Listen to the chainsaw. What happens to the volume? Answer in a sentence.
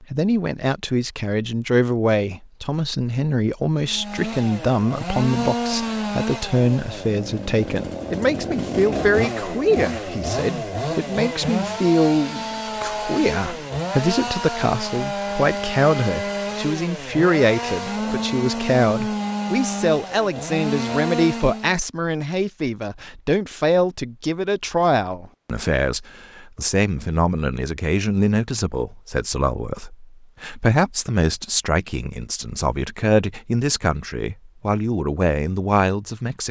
The volume of the chainsaw stays about the same.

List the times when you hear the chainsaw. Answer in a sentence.
You can hear the chainsaw from 3.9 to 21.8 s.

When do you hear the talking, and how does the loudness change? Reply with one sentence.
The talking can be heard from 0.0 to 36.4 s, at a steady volume.